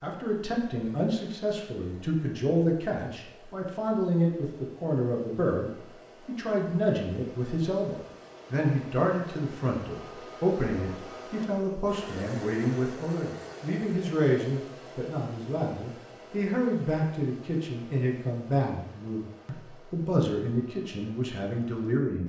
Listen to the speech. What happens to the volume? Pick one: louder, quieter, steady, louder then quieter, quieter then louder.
steady.